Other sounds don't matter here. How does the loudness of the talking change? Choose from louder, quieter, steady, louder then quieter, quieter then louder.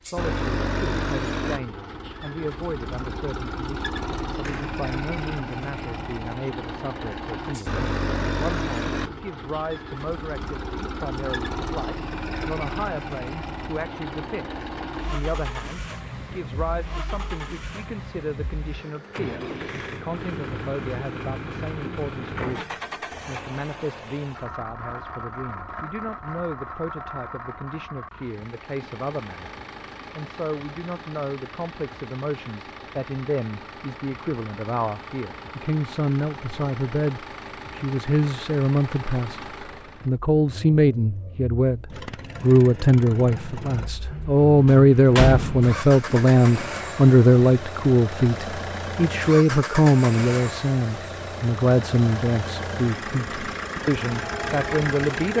louder.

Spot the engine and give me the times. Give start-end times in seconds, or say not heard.
0.0-55.3.